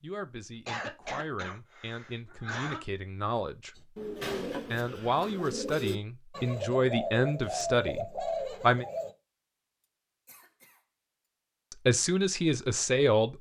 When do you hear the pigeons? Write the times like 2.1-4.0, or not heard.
3.8-9.2.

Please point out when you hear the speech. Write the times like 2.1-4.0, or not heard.
0.0-3.9, 4.7-8.8, 11.7-13.3.